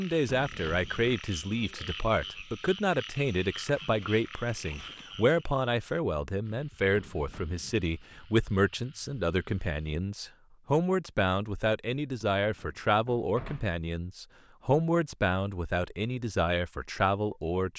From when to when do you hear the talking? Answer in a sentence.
The talking can be heard from 0.0 to 17.7 s.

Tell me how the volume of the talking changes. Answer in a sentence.
The loudness of the talking stays about the same.